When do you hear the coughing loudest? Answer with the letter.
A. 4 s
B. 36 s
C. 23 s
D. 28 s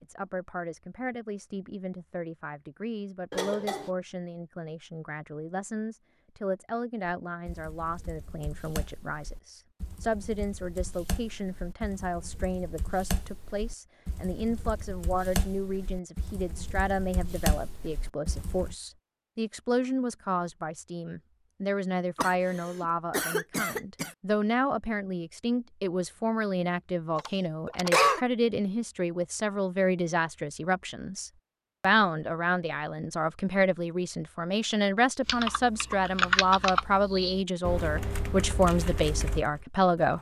D.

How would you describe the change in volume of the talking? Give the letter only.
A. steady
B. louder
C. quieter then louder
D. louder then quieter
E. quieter
B.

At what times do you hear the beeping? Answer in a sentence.
You can't hear the beeping here.